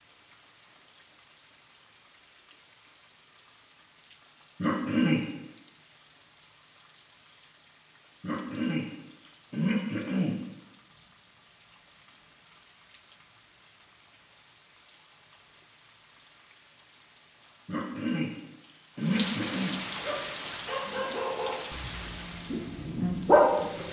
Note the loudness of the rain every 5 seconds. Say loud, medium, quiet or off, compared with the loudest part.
quiet, quiet, quiet, loud, loud.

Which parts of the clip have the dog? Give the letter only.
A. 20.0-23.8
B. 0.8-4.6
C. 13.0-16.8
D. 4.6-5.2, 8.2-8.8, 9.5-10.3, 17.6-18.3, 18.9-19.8
A.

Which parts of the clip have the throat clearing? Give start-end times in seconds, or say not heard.
4.6-5.2, 8.2-8.8, 9.5-10.3, 17.6-18.3, 18.9-19.8.